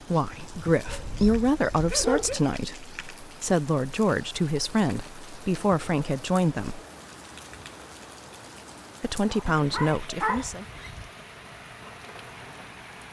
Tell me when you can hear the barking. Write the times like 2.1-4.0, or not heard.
0.8-2.5, 9.5-10.9.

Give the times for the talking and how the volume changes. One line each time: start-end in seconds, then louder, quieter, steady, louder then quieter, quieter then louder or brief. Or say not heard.
0.1-6.8 steady
9.0-10.7 brief.